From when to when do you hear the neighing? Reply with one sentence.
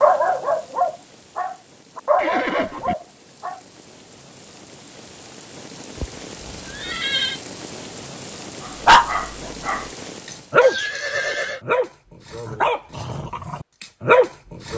The neighing can be heard from 2.1 to 3.0 s, from 6.0 to 7.4 s and from 10.6 to 11.6 s.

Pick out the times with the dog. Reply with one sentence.
The dog can be heard from 0.0 to 3.6 s and from 8.7 to 14.7 s.